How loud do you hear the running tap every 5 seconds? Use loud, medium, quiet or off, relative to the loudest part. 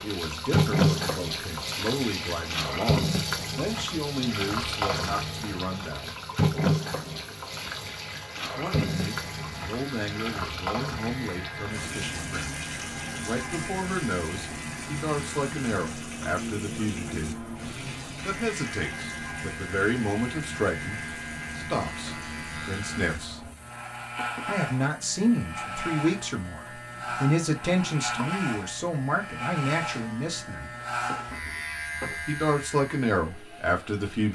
loud, loud, medium, medium, quiet, quiet, quiet.